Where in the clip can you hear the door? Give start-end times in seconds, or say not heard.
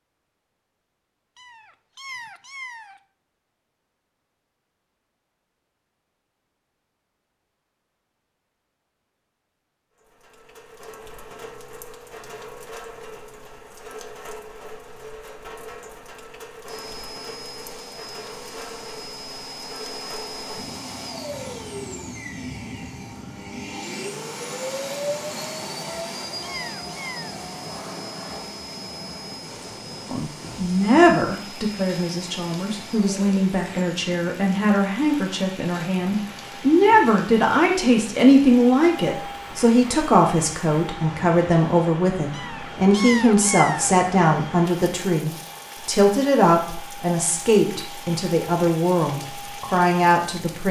not heard.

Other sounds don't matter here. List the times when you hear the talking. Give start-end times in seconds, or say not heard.
30.1-50.6.